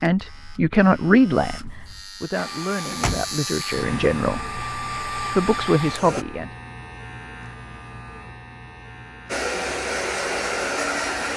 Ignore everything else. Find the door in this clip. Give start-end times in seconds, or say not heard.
2.9-3.4.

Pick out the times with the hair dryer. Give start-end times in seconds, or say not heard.
2.3-6.2, 9.2-11.3.